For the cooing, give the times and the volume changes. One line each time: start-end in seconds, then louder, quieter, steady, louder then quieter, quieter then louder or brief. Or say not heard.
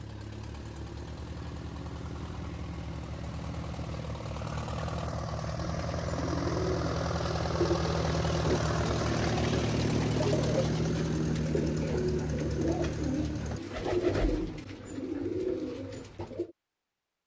5.5-16.5 steady.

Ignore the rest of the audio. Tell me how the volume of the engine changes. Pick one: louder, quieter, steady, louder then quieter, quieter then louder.
louder.